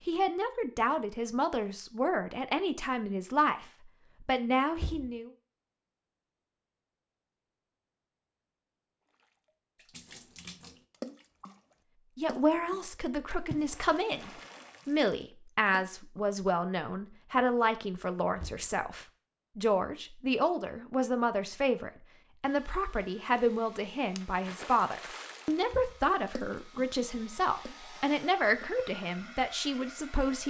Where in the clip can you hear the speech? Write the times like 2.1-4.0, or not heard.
0.1-5.3, 12.2-30.4.